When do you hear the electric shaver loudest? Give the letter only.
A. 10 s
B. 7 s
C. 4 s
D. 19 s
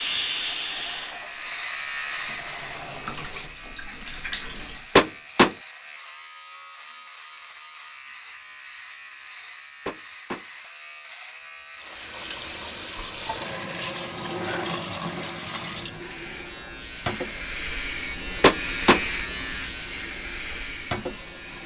D.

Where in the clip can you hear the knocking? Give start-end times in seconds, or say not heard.
5.0-5.5, 9.8-10.4, 18.4-19.0.